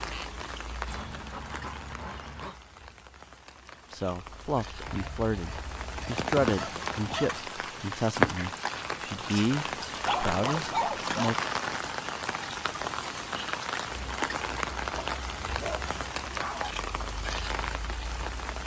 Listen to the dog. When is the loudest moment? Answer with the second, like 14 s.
11 s.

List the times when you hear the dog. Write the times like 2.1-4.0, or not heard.
0.8-2.6, 4.8-7.5, 9.8-11.4, 14.9-16.7.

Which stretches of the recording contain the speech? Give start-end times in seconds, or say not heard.
3.9-11.3.